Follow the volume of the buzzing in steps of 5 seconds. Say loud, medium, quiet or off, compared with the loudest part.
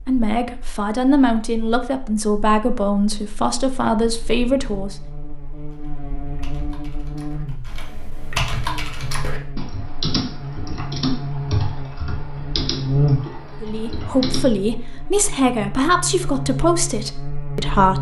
quiet, medium, loud, loud.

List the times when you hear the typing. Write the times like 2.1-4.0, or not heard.
5.5-14.5.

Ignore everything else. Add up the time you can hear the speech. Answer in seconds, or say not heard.
9 s.